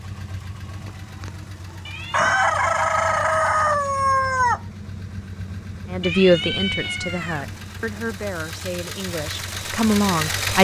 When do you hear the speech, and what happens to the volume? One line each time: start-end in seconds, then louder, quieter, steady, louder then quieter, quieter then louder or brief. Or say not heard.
5.9-10.5 quieter then louder.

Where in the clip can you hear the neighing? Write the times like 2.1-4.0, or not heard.
not heard.